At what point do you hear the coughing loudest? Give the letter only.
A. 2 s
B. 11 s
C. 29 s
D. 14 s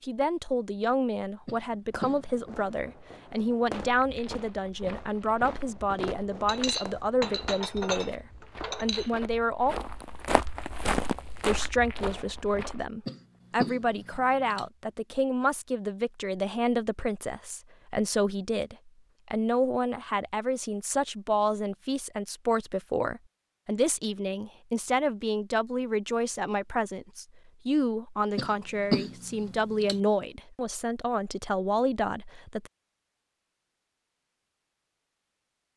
C.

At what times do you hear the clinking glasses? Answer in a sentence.
You can hear the clinking glasses from 6.5 to 9.1 s.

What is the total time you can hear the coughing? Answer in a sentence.
You can hear the coughing for 4 seconds altogether.